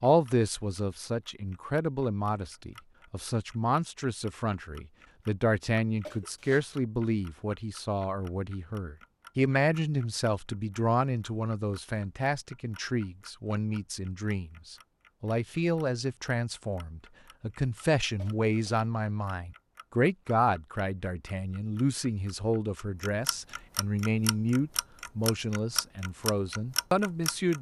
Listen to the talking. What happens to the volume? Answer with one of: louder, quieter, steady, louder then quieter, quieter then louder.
steady.